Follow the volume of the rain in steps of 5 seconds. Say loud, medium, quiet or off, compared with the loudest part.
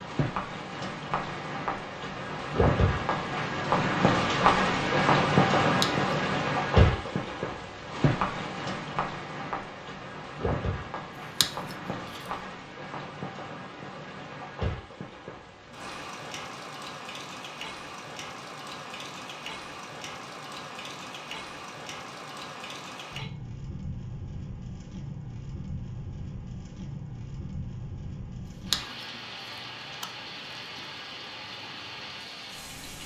loud, loud, medium, quiet, quiet, quiet, quiet.